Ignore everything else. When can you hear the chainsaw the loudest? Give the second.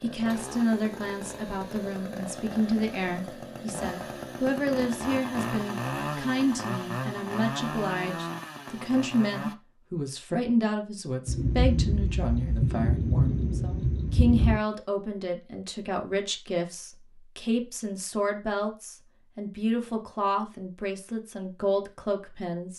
6 s.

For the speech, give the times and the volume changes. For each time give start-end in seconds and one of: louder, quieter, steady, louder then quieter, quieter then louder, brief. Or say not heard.
0.0-22.7 steady.